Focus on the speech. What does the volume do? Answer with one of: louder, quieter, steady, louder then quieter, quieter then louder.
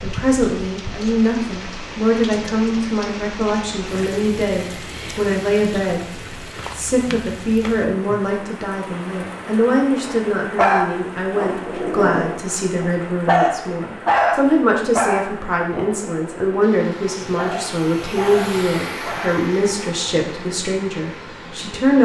steady.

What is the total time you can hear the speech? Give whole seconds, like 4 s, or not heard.
21 s.